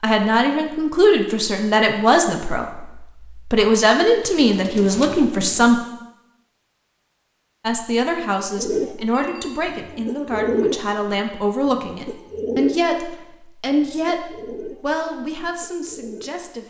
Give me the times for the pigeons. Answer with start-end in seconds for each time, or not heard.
4.3-5.9, 8.5-16.6.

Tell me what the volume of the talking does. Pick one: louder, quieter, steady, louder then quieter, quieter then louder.
quieter.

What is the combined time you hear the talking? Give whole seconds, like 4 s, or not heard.
15 s.